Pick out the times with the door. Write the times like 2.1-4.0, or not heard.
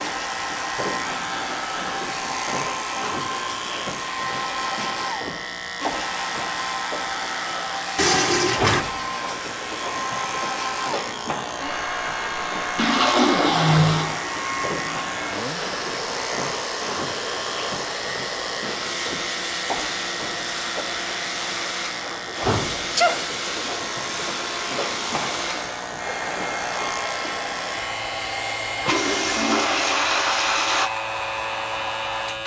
not heard.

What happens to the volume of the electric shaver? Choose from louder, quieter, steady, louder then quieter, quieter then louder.
steady.